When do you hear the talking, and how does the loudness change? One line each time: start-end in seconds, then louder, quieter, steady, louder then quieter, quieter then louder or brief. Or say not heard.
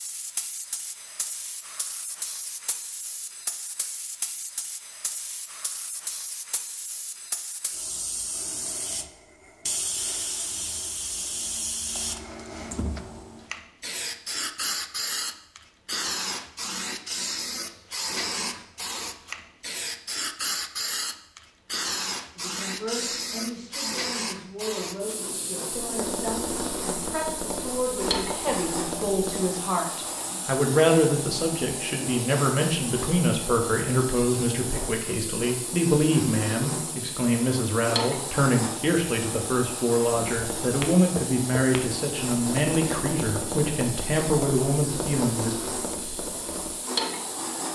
22.4-45.5 louder.